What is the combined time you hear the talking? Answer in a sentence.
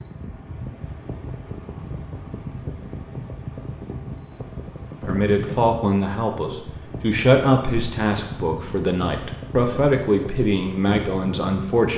The talking can be heard for 7 seconds in total.